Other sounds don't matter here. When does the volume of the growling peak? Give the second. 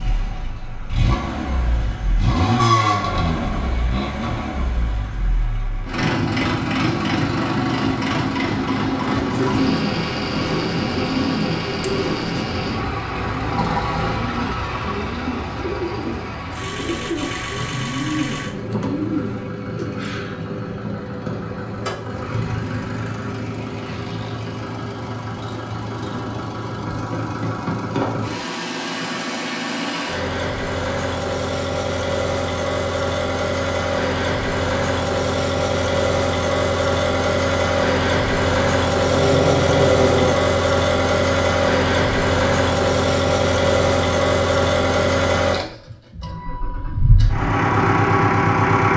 40 s.